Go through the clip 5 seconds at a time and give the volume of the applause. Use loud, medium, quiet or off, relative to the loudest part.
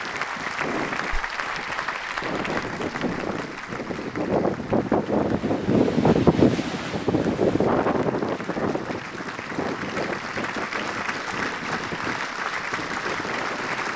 loud, medium, loud.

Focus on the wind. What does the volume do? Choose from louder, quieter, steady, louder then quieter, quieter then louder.
louder then quieter.